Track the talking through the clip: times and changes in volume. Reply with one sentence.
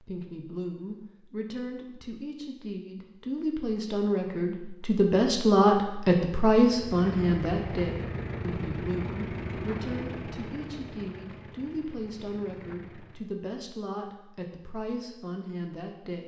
You can hear the talking from 0.0 to 16.2 s, getting louder then quieter.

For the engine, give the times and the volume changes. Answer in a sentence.
The engine can be heard from 6.7 to 13.3 s, getting quieter.